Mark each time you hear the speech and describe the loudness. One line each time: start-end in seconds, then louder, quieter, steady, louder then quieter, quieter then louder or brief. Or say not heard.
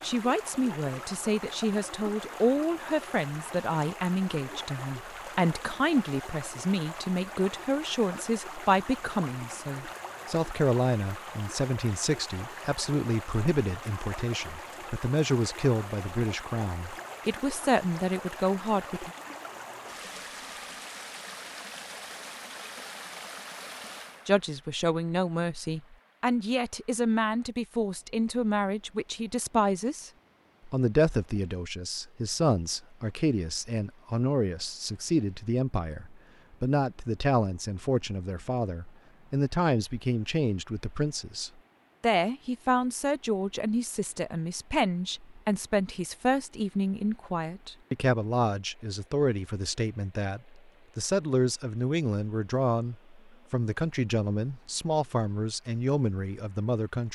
0.0-19.1 steady
24.2-57.1 steady.